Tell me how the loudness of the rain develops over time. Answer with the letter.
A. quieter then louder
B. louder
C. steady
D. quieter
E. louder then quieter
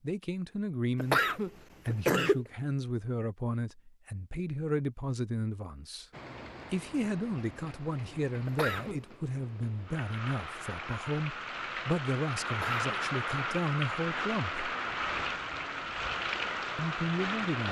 B.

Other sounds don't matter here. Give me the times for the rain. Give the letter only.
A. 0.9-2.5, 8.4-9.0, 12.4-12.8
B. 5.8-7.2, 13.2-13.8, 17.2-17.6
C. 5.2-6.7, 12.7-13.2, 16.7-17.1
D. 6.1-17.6
D.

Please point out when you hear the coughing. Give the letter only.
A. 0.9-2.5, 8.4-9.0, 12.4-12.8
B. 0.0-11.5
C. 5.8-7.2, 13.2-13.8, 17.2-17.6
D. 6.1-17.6
A.